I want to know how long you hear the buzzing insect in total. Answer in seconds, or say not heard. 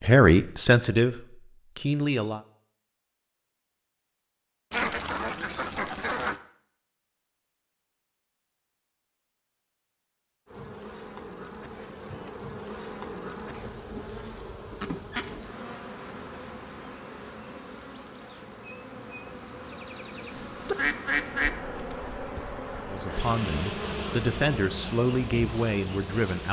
16 s.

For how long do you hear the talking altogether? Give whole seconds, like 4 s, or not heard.
6 s.